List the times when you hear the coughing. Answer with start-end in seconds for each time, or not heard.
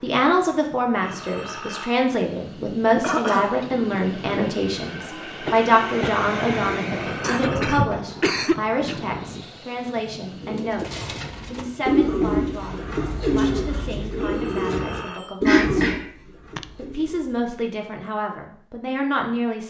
3.0-3.6, 7.2-9.0, 15.4-16.6.